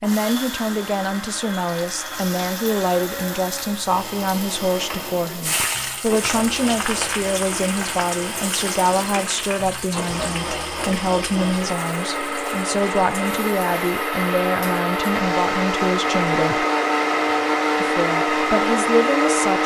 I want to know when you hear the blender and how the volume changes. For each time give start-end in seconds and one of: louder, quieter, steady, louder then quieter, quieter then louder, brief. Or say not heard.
0.0-19.6 louder.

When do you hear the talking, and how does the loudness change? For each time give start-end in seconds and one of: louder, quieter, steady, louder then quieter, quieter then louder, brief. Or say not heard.
0.0-16.6 steady
17.8-19.6 brief.